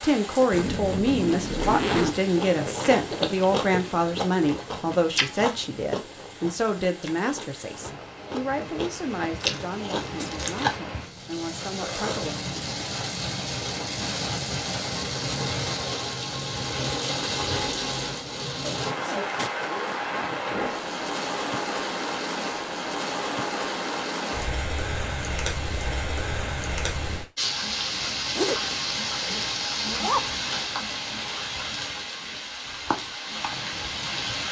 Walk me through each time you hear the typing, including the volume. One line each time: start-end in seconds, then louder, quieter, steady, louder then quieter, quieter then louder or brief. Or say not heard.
not heard.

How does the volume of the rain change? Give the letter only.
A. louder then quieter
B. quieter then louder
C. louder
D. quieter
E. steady
C.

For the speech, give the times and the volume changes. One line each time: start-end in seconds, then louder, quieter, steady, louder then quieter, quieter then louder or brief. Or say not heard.
0.0-12.4 quieter.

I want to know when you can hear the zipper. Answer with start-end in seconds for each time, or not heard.
0.5-2.1, 18.6-20.2, 28.4-30.2.